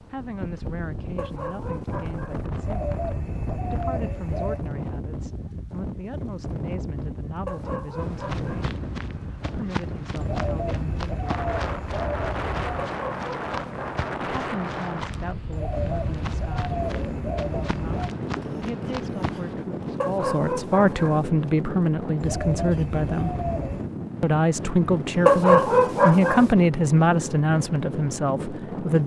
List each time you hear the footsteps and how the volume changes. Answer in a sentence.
You can hear the footsteps from 8.0 to 19.6 s, at a steady volume.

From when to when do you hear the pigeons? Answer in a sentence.
You can hear the pigeons from 2.6 to 4.7 s, from 10.2 to 12.9 s, from 15.5 to 18.1 s and from 22.2 to 23.9 s.